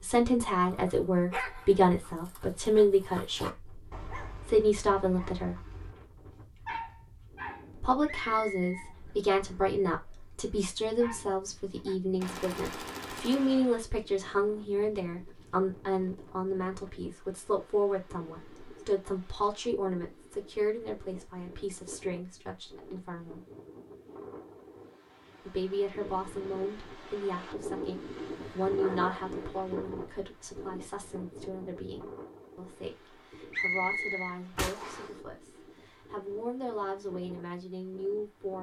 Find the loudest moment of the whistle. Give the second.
34 s.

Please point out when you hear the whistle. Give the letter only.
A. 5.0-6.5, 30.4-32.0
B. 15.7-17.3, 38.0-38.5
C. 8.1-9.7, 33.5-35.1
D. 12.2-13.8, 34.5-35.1
C.